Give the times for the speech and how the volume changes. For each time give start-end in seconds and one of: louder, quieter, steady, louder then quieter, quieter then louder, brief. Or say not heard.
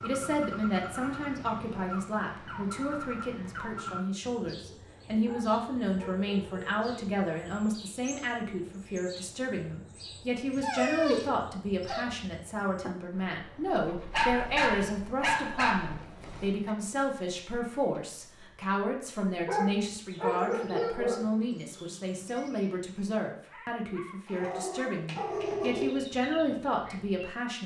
0.0-27.6 steady.